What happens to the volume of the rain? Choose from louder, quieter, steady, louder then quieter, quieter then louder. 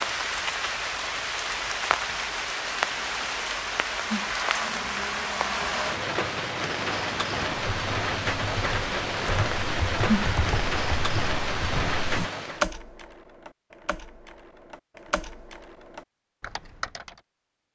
steady.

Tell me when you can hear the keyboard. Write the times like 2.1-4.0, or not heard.
7.5-17.2.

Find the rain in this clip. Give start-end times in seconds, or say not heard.
0.0-12.7.